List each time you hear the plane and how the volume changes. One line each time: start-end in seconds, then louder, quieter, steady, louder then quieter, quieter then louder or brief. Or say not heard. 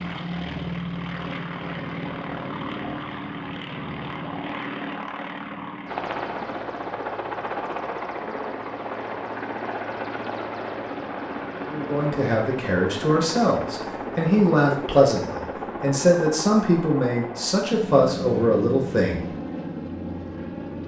0.0-20.8 steady.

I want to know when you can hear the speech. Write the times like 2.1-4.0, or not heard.
11.7-19.2.